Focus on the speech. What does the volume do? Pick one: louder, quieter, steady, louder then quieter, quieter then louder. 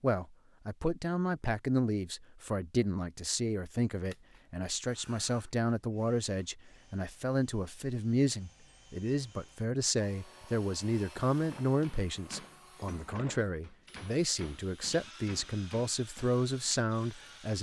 steady.